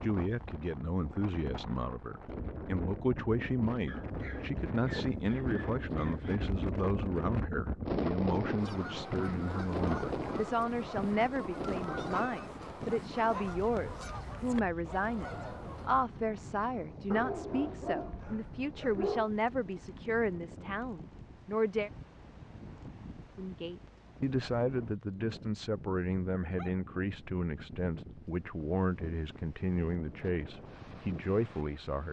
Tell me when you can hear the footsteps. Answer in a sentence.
You can't hear the footsteps here.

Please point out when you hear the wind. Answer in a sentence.
You can hear the wind from 0.0 to 32.0 s.